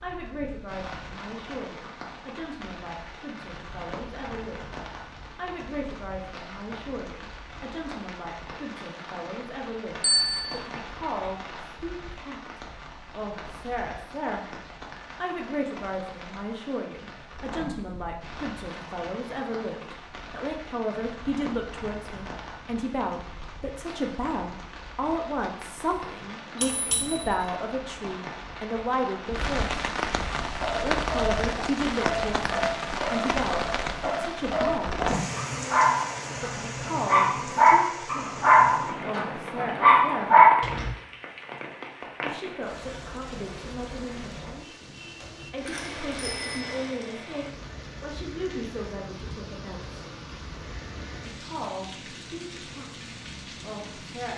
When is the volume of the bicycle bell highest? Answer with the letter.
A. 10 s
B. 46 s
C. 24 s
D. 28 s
A.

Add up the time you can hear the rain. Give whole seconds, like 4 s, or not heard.
54 s.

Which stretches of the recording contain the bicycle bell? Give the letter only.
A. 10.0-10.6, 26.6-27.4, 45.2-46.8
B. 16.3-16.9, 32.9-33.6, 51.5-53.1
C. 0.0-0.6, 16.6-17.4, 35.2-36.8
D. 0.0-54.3
A.